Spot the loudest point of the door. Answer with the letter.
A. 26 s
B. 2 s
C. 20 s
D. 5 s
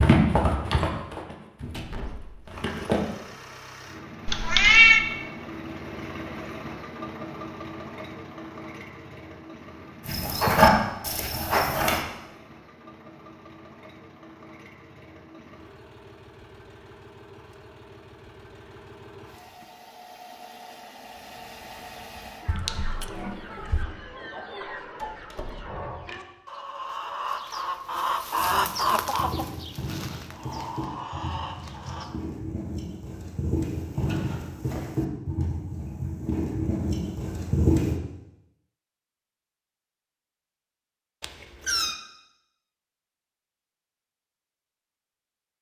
B.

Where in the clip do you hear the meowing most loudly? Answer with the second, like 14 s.
5 s.